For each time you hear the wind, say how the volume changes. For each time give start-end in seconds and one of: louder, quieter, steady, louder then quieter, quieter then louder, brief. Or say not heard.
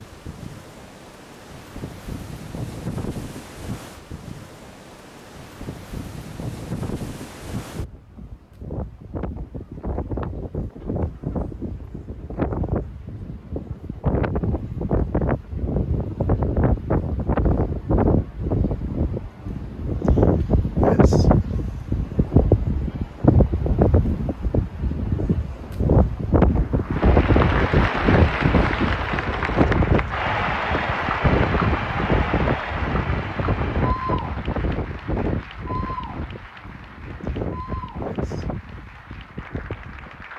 0.0-40.3 louder then quieter.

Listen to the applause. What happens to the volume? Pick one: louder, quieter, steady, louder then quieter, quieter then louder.
quieter.